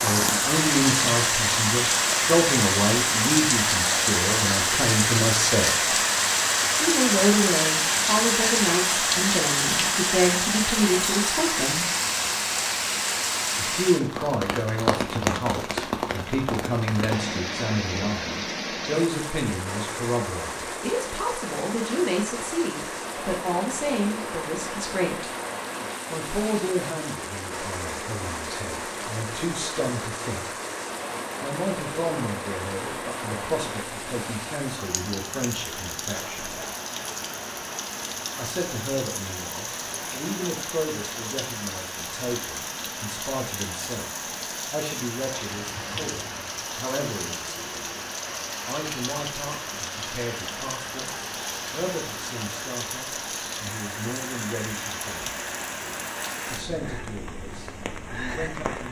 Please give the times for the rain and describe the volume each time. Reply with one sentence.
You can hear the rain from 0.0 to 58.8 s, getting quieter.